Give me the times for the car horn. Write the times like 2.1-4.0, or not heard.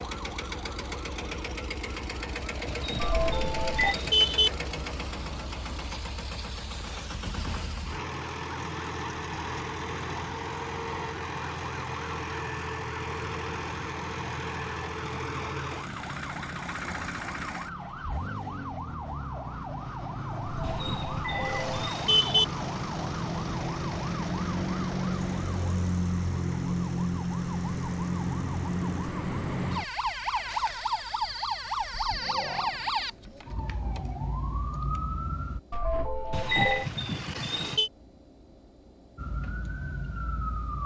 2.6-4.5, 20.6-22.4, 36.3-37.9.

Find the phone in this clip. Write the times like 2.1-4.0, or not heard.
3.0-4.0, 20.7-21.9, 35.7-36.9.